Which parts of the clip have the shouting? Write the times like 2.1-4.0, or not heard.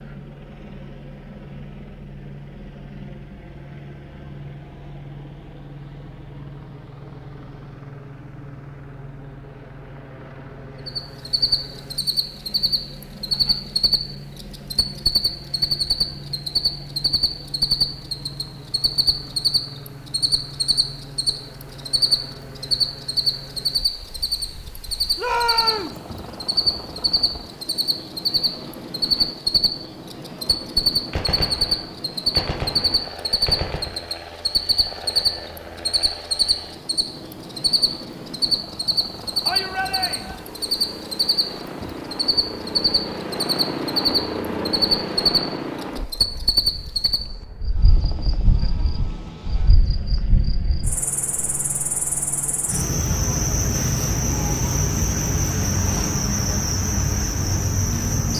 25.1-26.0, 39.5-40.5.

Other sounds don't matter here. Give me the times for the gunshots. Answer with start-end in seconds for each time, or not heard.
31.1-33.9.